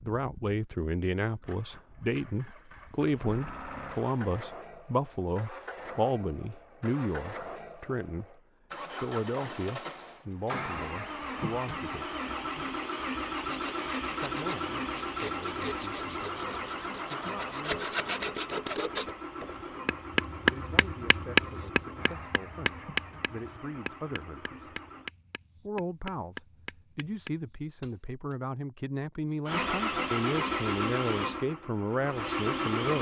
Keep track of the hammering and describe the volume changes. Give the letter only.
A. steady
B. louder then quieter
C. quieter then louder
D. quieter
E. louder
D.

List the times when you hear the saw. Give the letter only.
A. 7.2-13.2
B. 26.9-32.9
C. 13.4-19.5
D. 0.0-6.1
C.